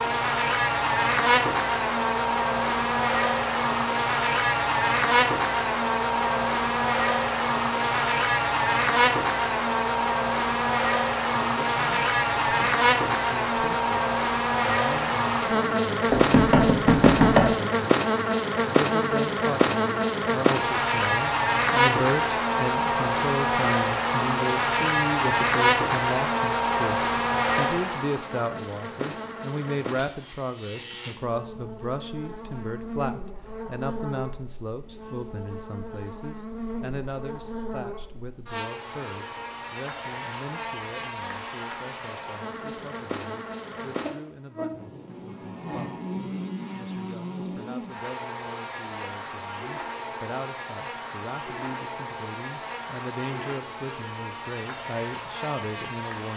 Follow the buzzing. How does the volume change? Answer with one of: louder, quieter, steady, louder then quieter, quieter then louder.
quieter.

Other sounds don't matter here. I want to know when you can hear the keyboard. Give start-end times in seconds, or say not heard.
not heard.